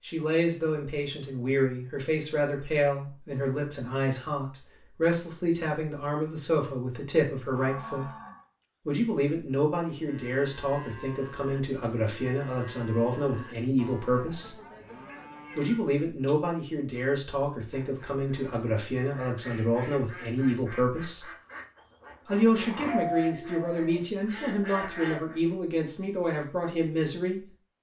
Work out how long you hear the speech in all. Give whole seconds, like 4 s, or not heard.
25 s.